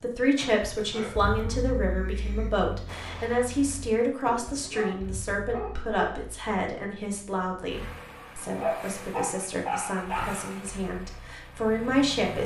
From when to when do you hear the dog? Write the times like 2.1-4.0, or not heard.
0.3-2.5, 4.5-6.0, 8.6-10.6.